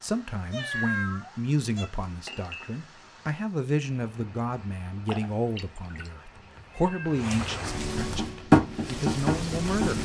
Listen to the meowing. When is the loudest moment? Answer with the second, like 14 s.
1 s.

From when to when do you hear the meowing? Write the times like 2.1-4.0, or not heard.
0.5-1.9, 6.5-7.2.